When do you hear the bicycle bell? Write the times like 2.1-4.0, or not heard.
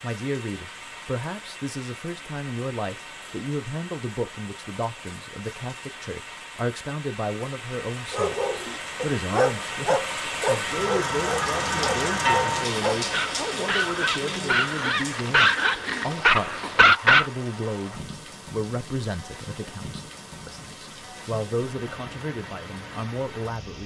not heard.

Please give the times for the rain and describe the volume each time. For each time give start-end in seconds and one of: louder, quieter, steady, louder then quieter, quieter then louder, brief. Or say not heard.
0.0-23.8 louder then quieter.